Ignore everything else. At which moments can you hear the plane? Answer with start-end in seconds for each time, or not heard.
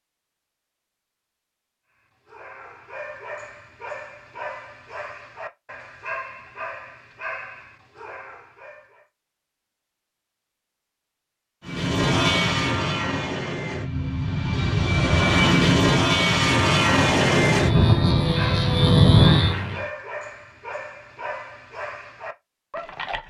11.7-19.9.